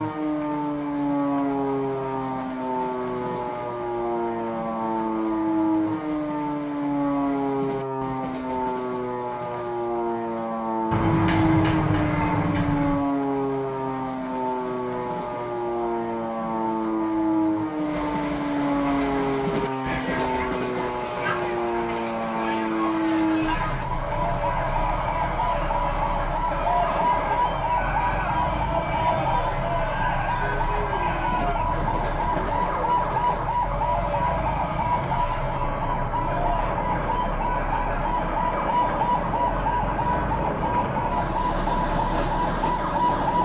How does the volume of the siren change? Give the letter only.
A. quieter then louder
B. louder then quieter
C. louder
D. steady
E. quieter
D.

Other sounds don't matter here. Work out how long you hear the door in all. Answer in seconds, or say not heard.
2 s.